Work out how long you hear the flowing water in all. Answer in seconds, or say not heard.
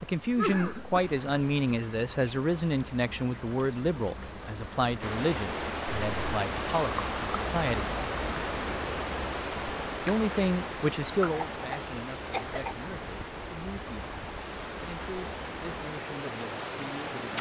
12 s.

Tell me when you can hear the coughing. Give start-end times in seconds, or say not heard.
0.3-1.0, 11.3-12.8.